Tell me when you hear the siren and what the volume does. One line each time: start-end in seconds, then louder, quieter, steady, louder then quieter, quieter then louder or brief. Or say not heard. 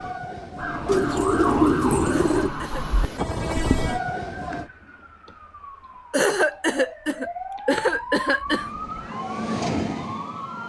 0.0-10.6 quieter then louder.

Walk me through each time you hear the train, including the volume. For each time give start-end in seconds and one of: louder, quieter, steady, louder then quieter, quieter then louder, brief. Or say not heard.
0.0-4.7 louder
8.4-10.6 brief.